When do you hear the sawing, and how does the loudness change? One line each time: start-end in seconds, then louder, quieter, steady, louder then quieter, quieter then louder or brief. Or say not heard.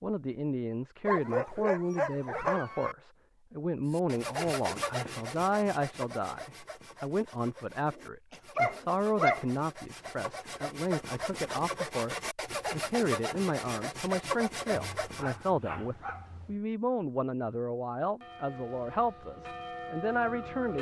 3.9-15.5 quieter then louder.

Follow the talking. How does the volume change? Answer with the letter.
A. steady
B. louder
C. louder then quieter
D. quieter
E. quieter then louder
A.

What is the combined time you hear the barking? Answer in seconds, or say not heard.
5 s.